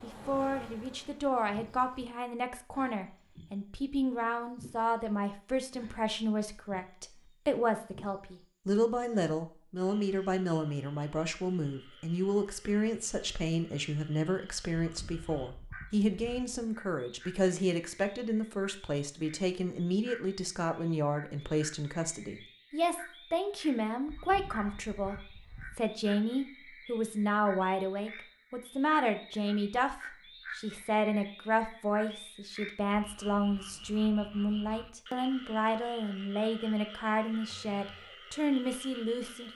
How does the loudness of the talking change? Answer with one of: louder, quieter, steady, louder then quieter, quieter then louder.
steady.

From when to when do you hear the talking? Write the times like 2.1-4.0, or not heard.
0.0-39.5.